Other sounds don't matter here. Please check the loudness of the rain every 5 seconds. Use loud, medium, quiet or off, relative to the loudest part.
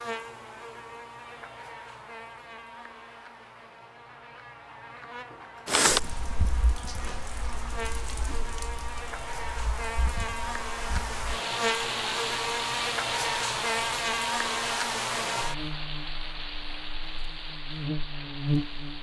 off, loud, loud, medium.